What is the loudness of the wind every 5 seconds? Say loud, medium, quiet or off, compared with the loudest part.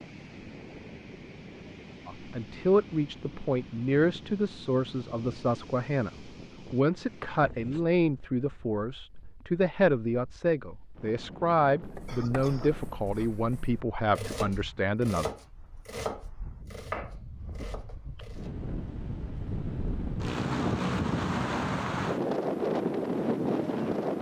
quiet, quiet, quiet, quiet, loud.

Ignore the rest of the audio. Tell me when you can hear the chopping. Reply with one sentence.
The chopping can be heard from 11.8 to 18.6 s.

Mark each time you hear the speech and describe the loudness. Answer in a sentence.
You can hear the speech from 2.0 to 15.3 s, at a steady volume.